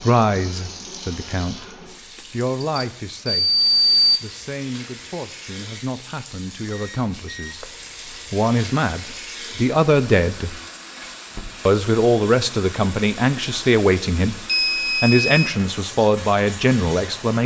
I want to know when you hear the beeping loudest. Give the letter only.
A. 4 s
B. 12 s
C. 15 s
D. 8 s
A.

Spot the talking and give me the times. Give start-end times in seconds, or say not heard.
0.0-7.7, 8.3-10.6, 11.7-14.4, 15.0-17.4.